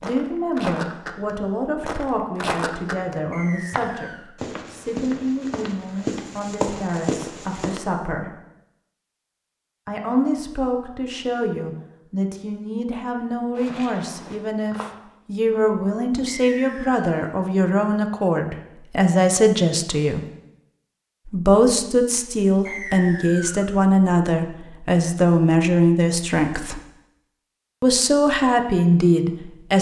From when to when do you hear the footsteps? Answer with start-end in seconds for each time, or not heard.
0.0-7.8, 13.6-14.8.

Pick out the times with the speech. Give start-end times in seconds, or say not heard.
0.0-8.3, 9.8-20.2, 21.2-26.8, 27.8-29.7.